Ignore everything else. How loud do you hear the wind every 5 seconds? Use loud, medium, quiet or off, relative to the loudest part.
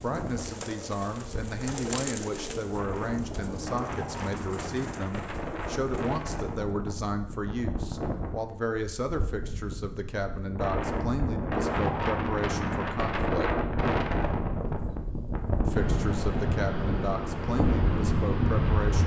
medium, medium, loud, loud.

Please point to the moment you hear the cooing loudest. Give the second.
2 s.